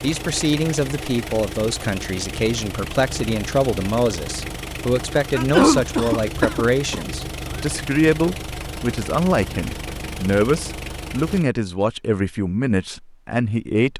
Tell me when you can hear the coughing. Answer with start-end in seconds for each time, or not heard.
5.3-7.6.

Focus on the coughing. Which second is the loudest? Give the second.
6 s.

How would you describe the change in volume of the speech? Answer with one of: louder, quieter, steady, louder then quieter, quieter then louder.
steady.